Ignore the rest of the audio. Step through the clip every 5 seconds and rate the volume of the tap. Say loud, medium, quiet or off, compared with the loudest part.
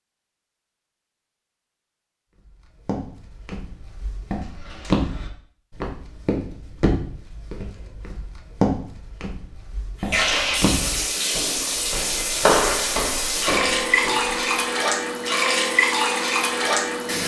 off, off, loud, loud.